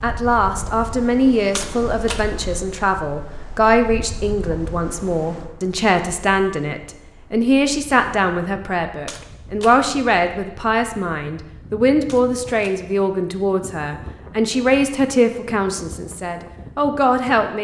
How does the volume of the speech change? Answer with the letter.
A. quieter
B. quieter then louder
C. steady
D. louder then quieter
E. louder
C.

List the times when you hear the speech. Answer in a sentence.
The speech can be heard from 0.0 to 17.5 s.